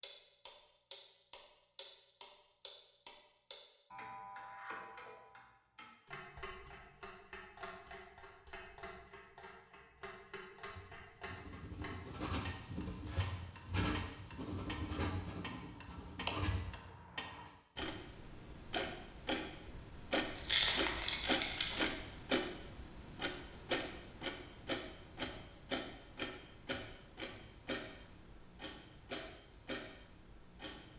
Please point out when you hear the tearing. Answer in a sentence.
You can hear the tearing from 20.4 to 21.9 s.